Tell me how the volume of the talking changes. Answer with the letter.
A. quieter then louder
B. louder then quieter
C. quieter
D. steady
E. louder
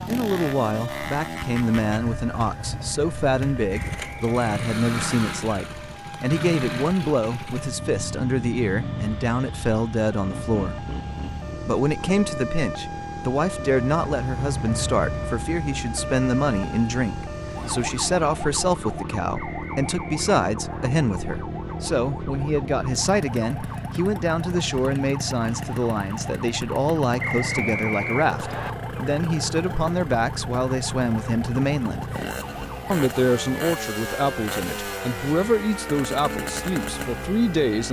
D.